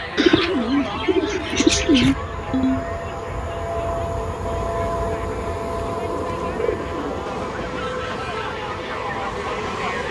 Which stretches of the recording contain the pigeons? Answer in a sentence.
You can hear the pigeons from 0.1 to 2.1 s and from 6.0 to 7.6 s.